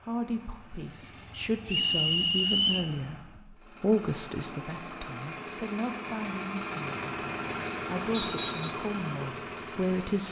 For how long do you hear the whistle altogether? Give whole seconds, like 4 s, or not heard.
2 s.